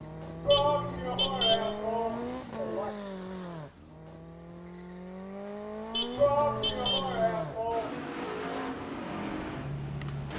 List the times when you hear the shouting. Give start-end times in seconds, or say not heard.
0.5-3.0, 6.2-8.0.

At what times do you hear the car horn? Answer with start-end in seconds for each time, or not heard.
0.5-1.8, 5.9-7.3.